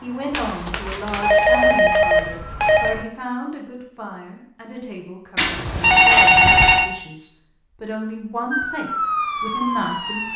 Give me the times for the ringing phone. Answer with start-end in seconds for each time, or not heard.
0.3-3.0, 5.3-6.9.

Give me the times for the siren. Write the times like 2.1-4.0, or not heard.
0.0-3.0, 8.5-10.3.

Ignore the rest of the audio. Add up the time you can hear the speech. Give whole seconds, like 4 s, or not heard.
10 s.